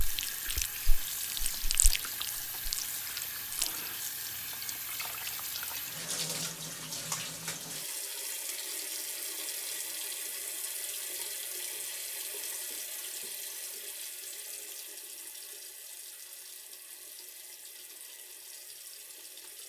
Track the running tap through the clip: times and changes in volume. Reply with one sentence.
You can hear the running tap from 0.0 to 19.6 s, getting quieter.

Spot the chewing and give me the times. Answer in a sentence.
You can hear the chewing from 0.0 to 3.7 s.